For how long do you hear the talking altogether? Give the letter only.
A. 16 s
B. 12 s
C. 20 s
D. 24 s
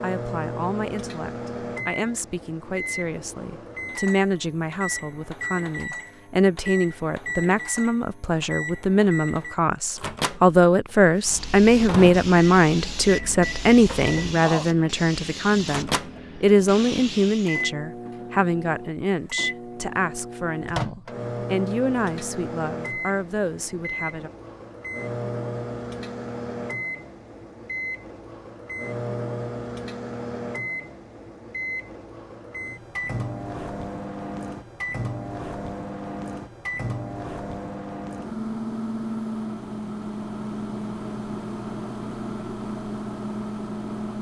D.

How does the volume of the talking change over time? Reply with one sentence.
The loudness of the talking goes up, then down.